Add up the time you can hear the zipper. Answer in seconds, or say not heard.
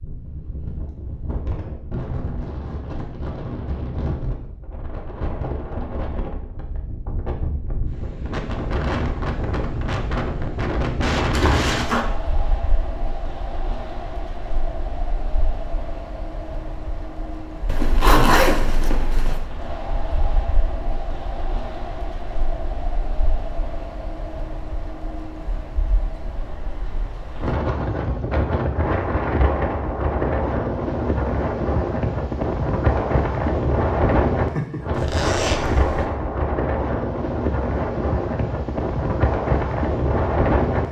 4 s.